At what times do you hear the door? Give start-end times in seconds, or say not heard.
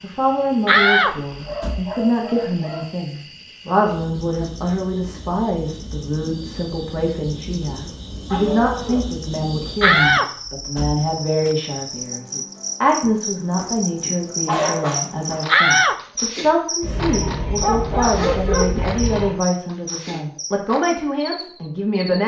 0.7-1.9, 9.8-11.5, 15.4-16.0.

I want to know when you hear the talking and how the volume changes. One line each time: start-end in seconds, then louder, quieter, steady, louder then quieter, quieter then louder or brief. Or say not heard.
0.0-22.2 steady.